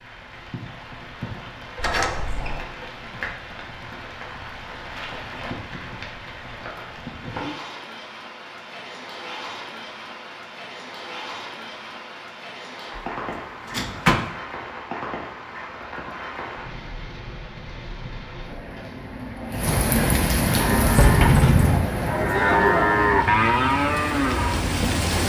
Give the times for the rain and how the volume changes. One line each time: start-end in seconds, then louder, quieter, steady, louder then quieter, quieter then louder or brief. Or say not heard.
0.0-25.2 louder.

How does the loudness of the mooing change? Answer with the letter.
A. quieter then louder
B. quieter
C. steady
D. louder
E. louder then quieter
E.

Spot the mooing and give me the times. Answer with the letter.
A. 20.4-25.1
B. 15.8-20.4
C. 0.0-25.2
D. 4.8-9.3
A.